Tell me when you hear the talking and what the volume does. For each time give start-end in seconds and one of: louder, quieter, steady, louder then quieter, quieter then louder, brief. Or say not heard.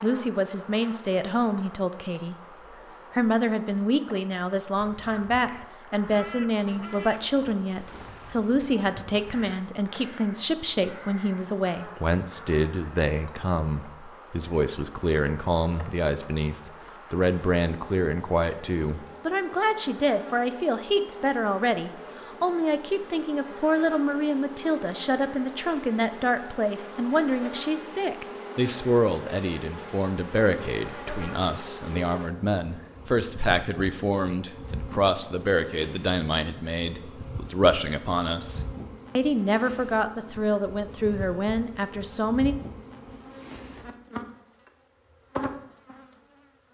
0.0-2.4 brief
3.1-42.5 steady.